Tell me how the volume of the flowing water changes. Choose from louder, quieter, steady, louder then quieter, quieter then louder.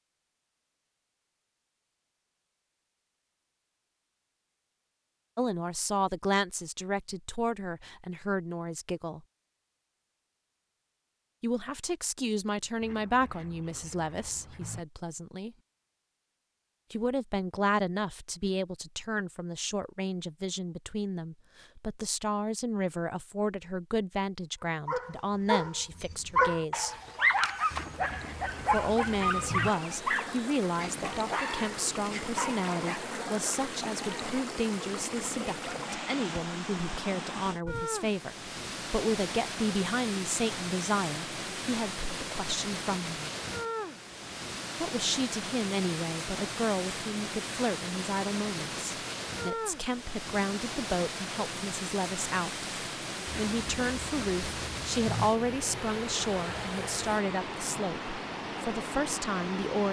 steady.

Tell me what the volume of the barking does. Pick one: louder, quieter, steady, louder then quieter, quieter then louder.
quieter.